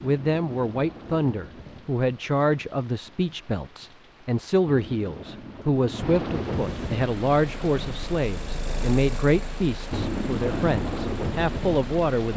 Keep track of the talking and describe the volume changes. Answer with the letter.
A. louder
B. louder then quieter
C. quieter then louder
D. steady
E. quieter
D.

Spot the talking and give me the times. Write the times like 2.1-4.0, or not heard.
0.0-12.3.